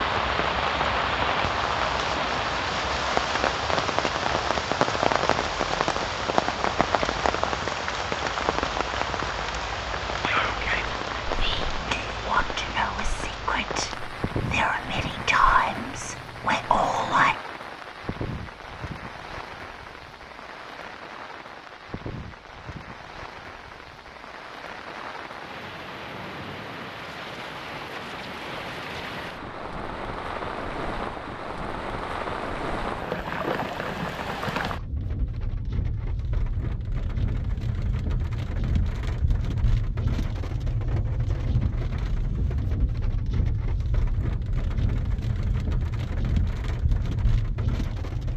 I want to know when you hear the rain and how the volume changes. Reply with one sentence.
The rain can be heard from 0.0 to 48.3 s, getting quieter then louder.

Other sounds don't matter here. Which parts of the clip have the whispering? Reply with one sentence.
The whispering can be heard from 10.2 to 17.4 s.